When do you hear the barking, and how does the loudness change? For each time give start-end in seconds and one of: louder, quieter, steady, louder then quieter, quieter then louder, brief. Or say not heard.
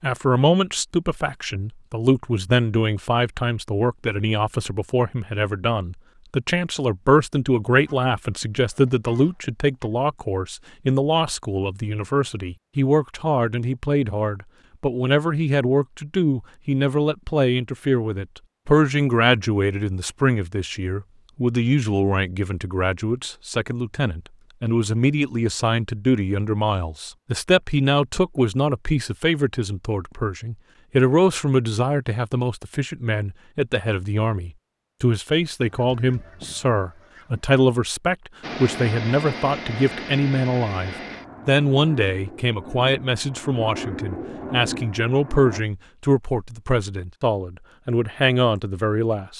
not heard.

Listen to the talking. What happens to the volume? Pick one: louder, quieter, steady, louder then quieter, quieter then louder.
steady.